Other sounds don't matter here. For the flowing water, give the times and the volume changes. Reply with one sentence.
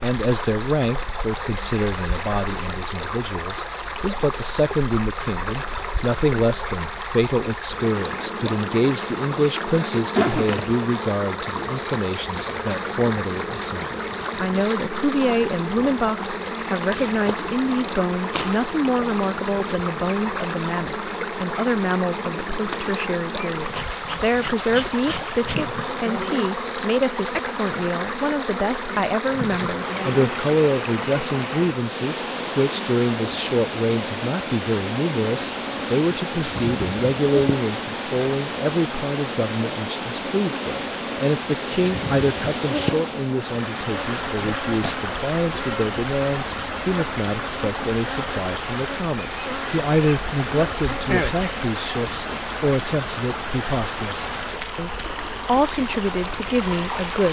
The flowing water can be heard from 0.0 to 57.2 s, at a steady volume.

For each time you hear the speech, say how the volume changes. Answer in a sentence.
You can hear the speech from 0.0 to 57.2 s, at a steady volume.